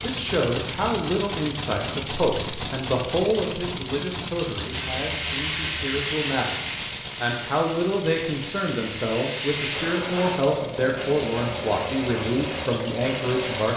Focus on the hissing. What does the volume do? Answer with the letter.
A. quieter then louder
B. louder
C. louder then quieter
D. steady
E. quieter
A.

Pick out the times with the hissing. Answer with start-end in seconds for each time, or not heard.
4.7-13.7.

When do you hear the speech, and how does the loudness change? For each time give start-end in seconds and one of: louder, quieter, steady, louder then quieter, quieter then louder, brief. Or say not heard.
0.0-13.7 steady.